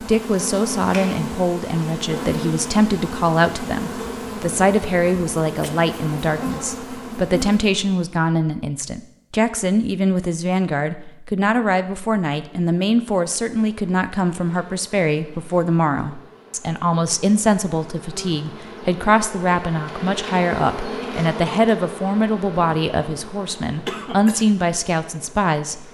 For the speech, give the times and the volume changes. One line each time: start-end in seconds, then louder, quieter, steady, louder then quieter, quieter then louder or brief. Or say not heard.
0.0-25.9 steady.